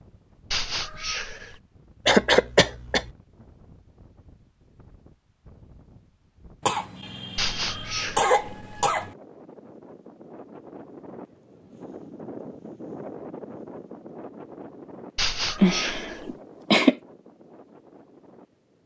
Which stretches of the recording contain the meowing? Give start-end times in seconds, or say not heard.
0.5-1.6, 7.3-8.9, 15.2-16.4.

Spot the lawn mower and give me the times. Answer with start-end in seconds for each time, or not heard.
not heard.